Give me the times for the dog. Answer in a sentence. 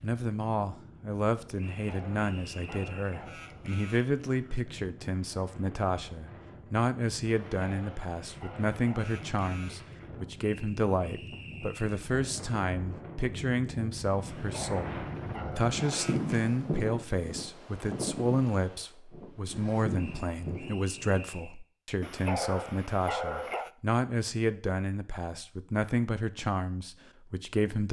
You can hear the dog from 1.7 to 4.6 s, from 7.6 to 9.9 s, from 14.2 to 16.4 s and from 22.0 to 23.7 s.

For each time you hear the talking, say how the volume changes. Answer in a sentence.
The talking can be heard from 0.0 to 27.8 s, at a steady volume.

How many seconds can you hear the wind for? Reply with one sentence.
The wind can be heard for 21 seconds in total.